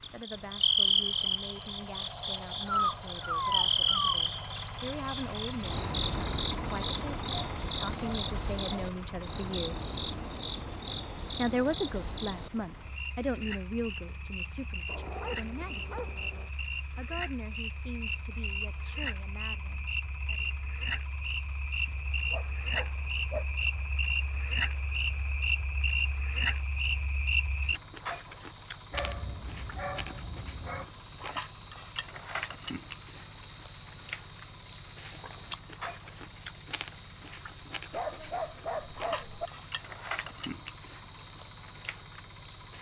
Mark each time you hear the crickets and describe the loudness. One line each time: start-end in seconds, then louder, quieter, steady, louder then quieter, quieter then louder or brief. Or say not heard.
0.0-42.7 quieter then louder.